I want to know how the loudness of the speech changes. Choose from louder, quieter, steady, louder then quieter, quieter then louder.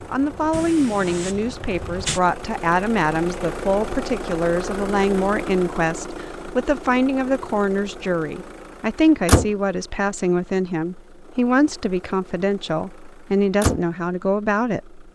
steady.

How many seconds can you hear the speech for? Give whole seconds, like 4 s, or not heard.
15 s.